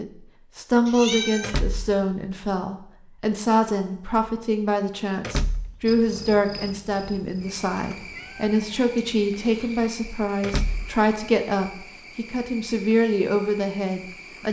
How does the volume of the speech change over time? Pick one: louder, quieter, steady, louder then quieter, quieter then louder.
steady.